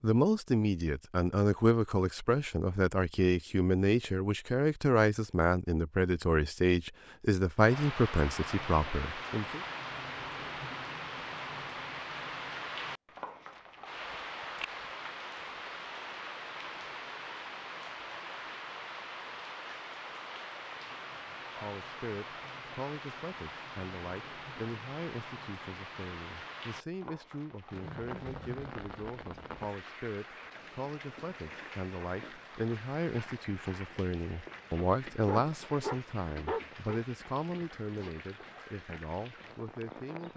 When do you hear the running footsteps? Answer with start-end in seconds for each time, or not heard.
not heard.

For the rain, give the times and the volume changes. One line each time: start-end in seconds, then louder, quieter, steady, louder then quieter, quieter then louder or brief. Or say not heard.
7.5-40.3 quieter.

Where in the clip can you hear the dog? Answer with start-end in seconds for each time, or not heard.
35.2-37.0.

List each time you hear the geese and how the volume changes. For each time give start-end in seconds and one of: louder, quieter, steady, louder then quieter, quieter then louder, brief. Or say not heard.
not heard.